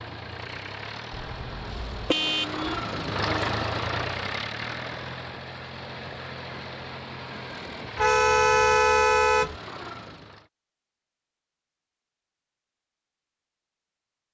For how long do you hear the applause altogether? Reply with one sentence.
You can't hear the applause here.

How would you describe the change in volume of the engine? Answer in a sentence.
The loudness of the engine goes up, then down.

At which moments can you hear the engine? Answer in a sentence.
You can hear the engine from 0.0 to 10.5 s.